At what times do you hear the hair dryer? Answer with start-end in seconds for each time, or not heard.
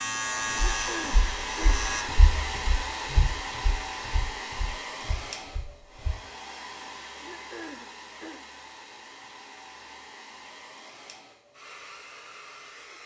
0.0-13.0.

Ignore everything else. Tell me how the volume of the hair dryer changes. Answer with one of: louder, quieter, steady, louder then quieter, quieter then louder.
quieter.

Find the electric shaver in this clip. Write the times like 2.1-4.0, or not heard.
0.0-2.0.